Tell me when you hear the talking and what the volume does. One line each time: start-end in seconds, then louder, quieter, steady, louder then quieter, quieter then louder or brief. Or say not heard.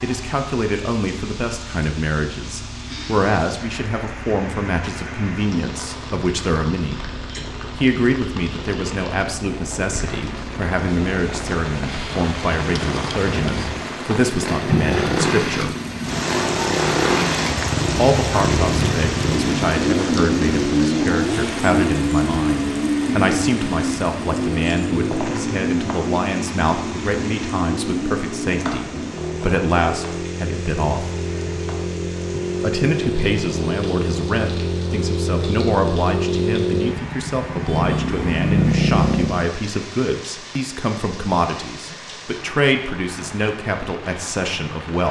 0.0-15.8 steady
17.9-31.1 steady
32.6-45.0 steady.